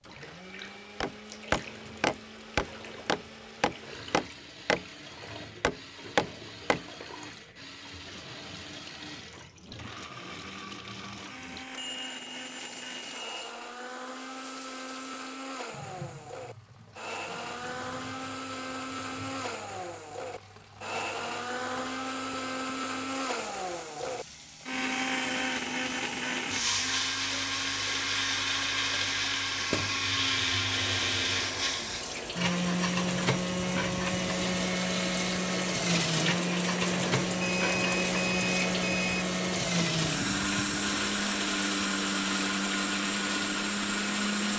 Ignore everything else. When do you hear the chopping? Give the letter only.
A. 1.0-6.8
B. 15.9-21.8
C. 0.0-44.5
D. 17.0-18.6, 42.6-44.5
A.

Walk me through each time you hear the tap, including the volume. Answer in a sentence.
The tap can be heard from 0.0 to 44.5 s, getting louder.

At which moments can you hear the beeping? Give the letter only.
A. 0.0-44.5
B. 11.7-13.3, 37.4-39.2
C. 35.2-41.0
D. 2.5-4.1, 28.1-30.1
B.